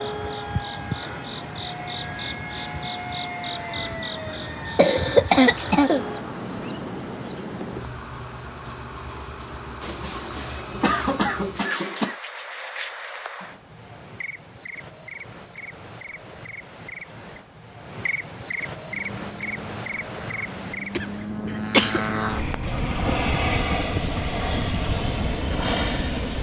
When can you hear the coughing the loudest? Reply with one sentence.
The volume of the coughing peaks at 5 seconds.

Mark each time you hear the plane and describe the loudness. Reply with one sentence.
The plane can be heard from 0.0 to 6.2 s, at a steady volume; and from 18.9 to 26.3 s, getting louder.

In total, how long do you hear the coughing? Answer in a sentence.
You can hear the coughing for 5 seconds altogether.